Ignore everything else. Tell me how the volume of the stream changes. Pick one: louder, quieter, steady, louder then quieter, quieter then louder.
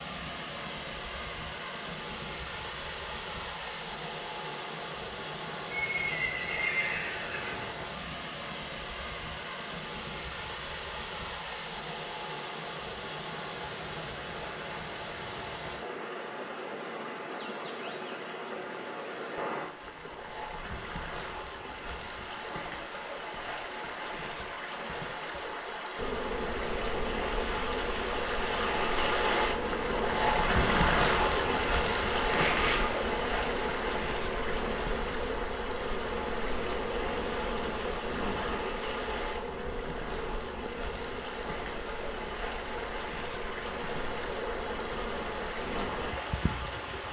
louder then quieter.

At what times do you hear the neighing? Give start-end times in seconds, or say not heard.
5.7-7.8, 32.2-33.0.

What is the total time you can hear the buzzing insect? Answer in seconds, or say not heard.
21 s.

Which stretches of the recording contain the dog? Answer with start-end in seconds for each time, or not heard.
not heard.